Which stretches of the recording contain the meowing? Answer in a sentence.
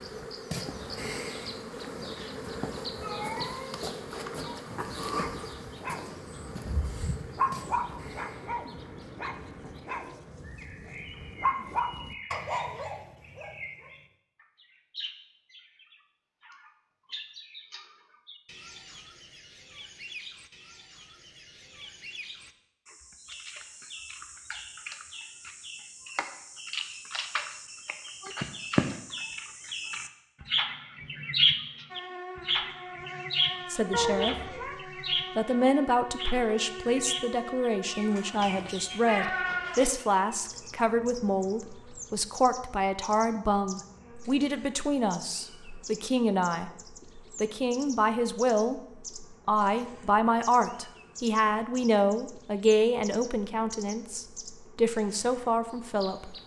The meowing can be heard from 2.1 to 4.4 s, from 33.9 to 34.8 s and from 38.4 to 40.0 s.